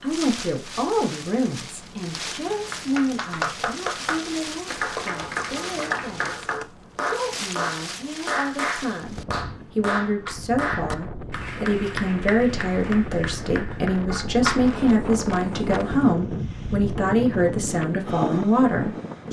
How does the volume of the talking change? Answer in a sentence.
The loudness of the talking goes down, then up.